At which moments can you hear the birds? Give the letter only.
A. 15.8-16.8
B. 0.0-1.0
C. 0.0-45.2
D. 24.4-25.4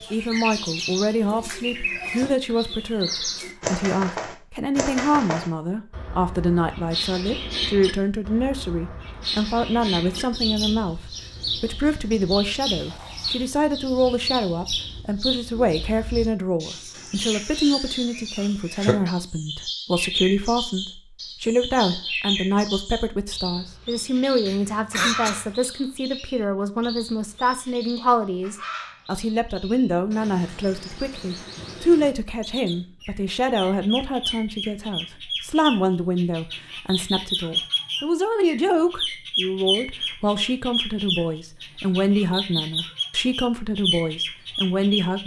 C.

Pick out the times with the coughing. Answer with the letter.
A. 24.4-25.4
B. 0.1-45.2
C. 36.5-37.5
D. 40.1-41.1
A.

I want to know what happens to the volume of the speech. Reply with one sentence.
The volume of the speech stays about the same.